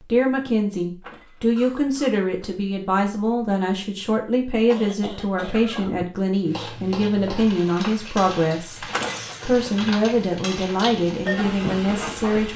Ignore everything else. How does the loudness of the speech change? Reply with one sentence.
The volume of the speech stays about the same.